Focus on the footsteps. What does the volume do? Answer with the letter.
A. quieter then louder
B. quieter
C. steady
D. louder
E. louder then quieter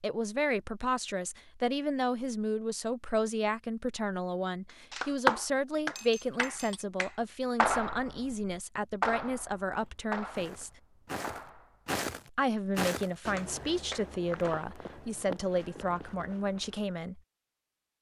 E.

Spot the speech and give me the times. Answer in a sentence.
You can hear the speech from 0.0 to 10.7 s and from 12.3 to 17.2 s.